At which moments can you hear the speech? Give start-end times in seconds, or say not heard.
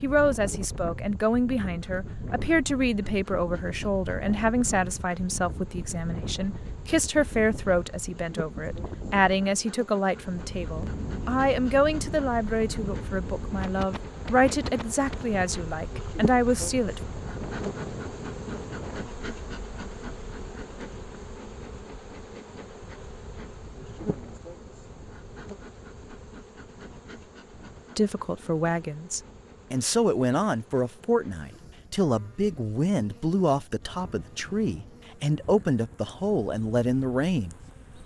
0.0-17.0, 27.9-37.5.